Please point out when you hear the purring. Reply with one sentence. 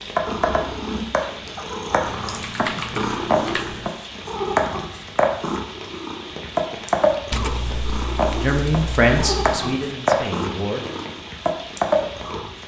The purring can be heard from 0.1 to 12.6 s.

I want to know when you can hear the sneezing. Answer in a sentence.
You can't hear the sneezing here.